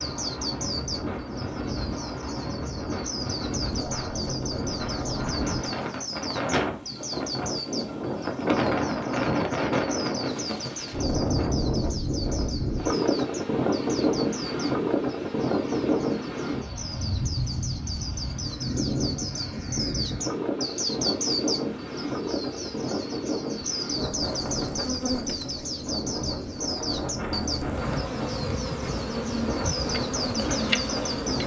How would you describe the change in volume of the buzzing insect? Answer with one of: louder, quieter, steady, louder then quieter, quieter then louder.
quieter then louder.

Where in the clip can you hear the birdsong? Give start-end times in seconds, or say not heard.
0.0-31.4.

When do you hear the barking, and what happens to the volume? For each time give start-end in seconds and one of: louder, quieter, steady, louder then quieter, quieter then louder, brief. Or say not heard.
not heard.